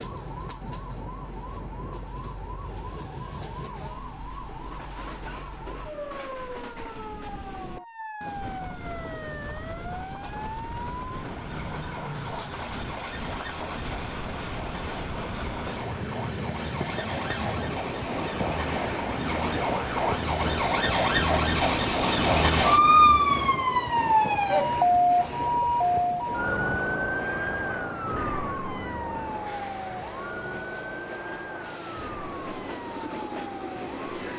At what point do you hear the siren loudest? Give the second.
23 s.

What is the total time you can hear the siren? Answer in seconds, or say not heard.
34 s.